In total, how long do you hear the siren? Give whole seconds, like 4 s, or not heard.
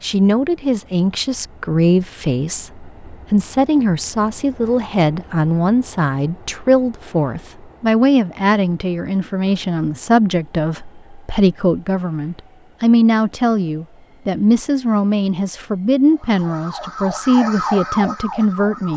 3 s.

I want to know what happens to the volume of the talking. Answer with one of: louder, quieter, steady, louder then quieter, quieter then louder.
steady.